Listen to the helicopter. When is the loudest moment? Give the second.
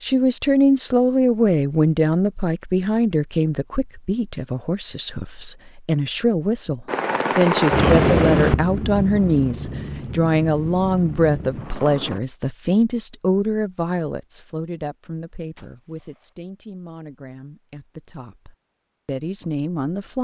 8 s.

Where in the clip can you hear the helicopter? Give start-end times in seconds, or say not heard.
6.8-12.2.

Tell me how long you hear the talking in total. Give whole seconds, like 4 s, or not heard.
20 s.